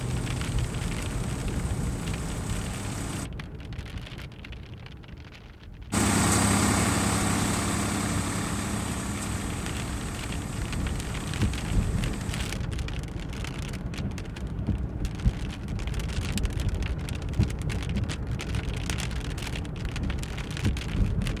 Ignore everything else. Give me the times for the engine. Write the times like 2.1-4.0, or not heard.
0.0-3.3, 5.9-12.5.